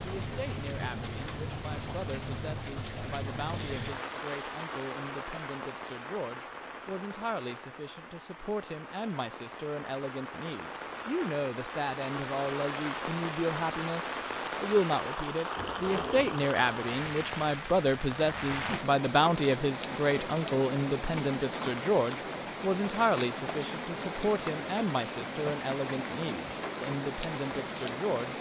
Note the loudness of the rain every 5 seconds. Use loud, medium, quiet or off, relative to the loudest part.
loud, medium, loud, loud, loud, loud.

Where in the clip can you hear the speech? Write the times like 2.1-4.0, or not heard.
0.0-28.3.